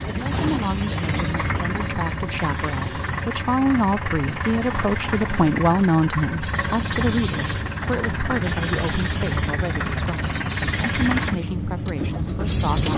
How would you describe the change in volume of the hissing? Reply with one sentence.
The volume of the hissing goes down, then up.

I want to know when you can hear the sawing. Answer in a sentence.
The sawing can't be heard in this clip.